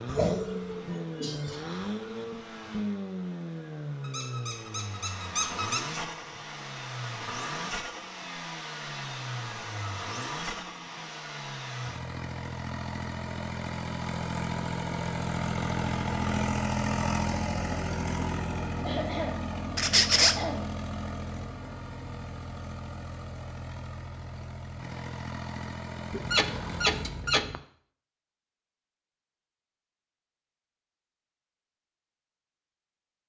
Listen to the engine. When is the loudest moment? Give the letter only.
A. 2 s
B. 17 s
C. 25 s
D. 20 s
B.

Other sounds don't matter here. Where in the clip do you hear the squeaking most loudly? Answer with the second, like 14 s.
20 s.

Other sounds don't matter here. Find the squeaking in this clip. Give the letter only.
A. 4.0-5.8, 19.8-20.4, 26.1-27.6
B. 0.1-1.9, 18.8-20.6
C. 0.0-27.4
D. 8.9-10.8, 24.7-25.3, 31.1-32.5
A.